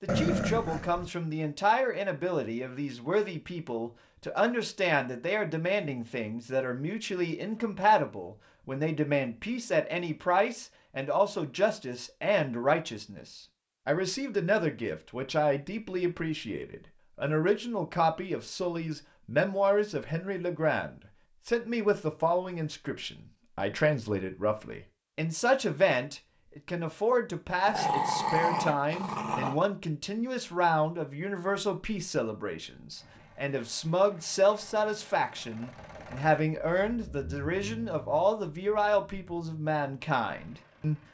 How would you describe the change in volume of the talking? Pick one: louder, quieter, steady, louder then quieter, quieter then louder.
steady.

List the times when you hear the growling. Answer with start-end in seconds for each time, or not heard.
0.1-1.1, 27.6-29.6.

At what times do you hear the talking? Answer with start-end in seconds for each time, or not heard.
0.0-41.0.